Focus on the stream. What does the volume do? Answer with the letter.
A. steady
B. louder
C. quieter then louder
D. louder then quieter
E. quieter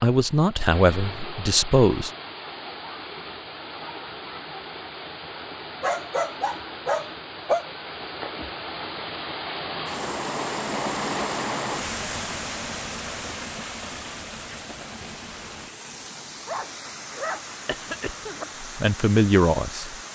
D.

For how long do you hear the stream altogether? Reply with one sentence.
The stream can be heard for 20 seconds in total.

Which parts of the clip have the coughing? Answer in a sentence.
You can hear the coughing from 17.6 to 18.6 s.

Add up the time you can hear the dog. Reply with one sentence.
You can hear the dog for 4 seconds altogether.